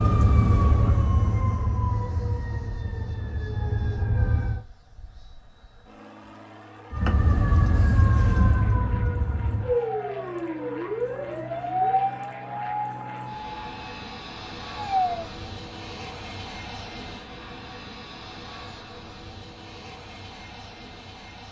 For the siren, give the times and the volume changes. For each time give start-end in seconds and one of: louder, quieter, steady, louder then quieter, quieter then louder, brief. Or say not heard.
0.0-4.7 quieter then louder
6.9-15.3 quieter.